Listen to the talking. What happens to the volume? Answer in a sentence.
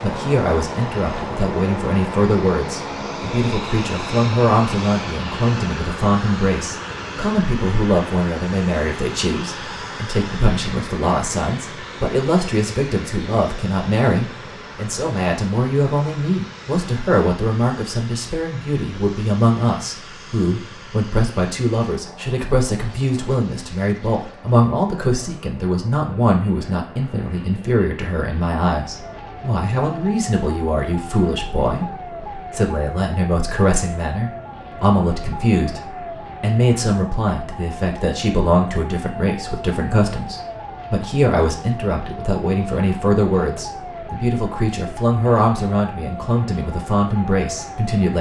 The volume of the talking stays about the same.